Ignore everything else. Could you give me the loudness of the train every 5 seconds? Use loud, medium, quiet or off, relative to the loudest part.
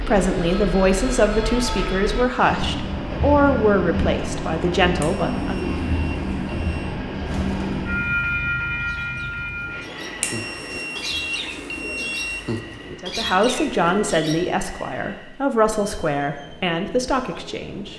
loud, loud, quiet, quiet.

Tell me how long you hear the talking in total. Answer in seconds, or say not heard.
11 s.